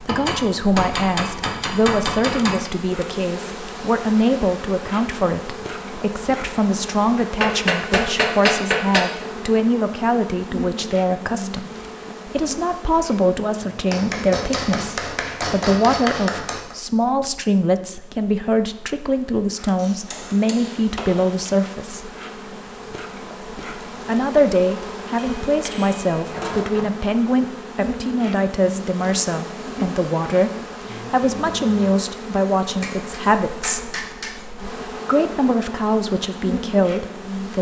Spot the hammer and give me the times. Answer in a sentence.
The hammer can be heard from 0.1 to 2.7 s, from 7.2 to 9.1 s, from 13.9 to 16.8 s, from 19.8 to 21.5 s, from 25.1 to 26.9 s and from 32.8 to 34.5 s.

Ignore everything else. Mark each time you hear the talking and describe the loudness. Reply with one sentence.
The talking can be heard from 0.0 to 22.1 s, at a steady volume; from 24.1 to 33.9 s, at a steady volume; and briefly from 35.0 to 37.5 s.